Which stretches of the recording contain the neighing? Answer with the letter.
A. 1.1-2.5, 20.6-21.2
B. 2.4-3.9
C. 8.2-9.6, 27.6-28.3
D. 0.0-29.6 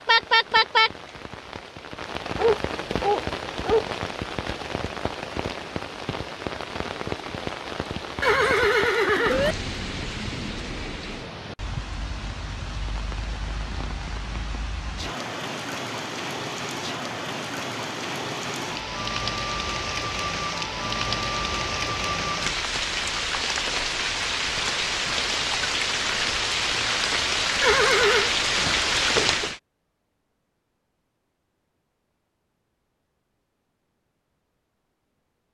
C.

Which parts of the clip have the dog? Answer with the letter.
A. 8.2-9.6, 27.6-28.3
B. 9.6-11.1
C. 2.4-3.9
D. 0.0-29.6
C.